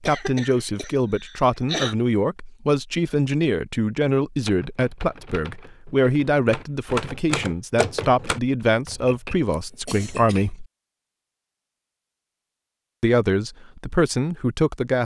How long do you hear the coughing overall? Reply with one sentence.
The coughing can be heard for 3 seconds in total.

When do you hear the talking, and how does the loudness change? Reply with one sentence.
You can hear the talking from 0.0 to 10.7 s, at a steady volume; and briefly from 13.0 to 15.0 s.